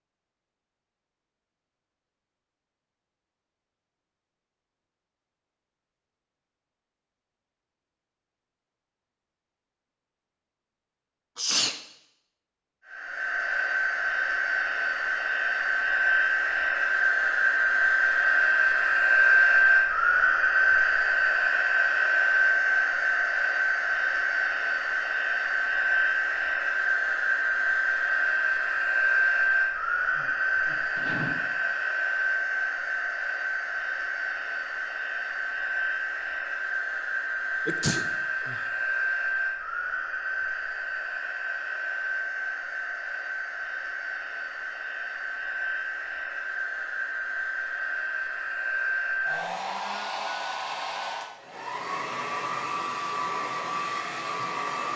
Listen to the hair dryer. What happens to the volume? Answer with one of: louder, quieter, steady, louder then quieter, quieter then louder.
quieter.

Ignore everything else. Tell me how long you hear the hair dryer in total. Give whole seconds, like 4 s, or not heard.
42 s.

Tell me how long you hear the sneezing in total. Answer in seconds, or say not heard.
3 s.